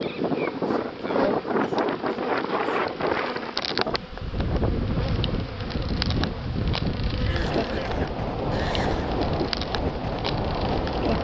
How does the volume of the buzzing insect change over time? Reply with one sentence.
The volume of the buzzing insect stays about the same.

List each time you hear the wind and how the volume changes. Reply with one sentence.
You can hear the wind from 0.0 to 11.1 s, at a steady volume.